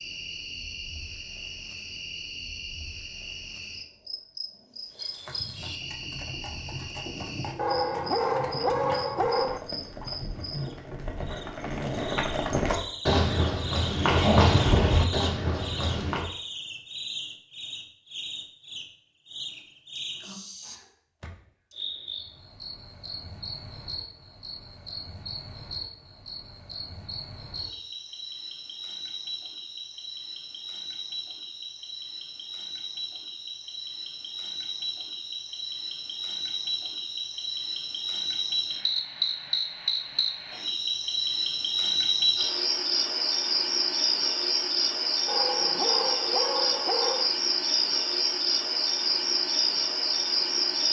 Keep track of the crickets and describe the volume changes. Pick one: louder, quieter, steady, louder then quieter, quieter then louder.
louder.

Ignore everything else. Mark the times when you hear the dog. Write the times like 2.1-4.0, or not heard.
7.5-9.6, 45.2-47.3.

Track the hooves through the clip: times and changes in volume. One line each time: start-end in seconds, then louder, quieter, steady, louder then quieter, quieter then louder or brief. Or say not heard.
4.9-16.2 louder.